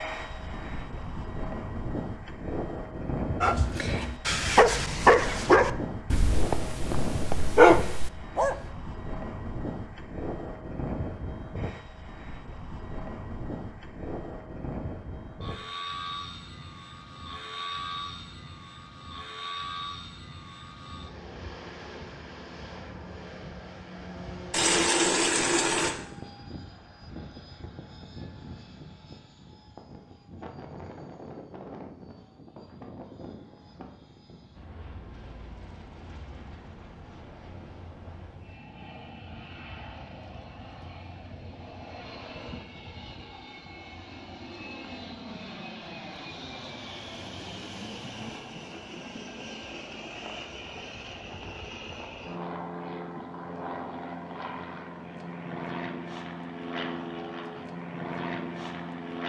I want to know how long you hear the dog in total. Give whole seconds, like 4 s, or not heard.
5 s.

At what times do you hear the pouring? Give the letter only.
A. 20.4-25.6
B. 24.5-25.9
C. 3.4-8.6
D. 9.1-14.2
B.